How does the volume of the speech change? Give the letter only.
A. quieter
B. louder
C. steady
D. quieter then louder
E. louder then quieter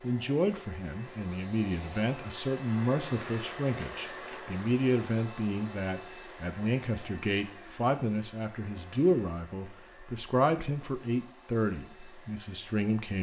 C.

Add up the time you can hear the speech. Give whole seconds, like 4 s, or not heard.
13 s.